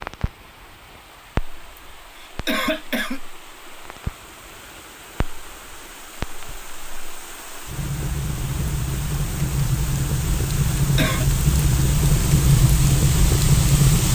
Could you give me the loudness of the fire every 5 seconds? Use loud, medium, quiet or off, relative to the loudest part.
quiet, medium, loud.